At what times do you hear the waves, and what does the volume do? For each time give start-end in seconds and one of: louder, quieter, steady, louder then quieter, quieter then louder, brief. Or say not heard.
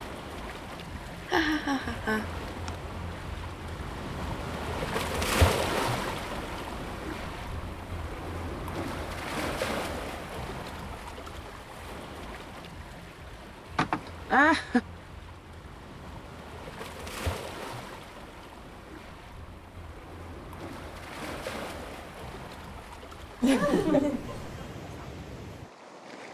0.0-26.2 quieter.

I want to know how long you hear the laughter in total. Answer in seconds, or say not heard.
4 s.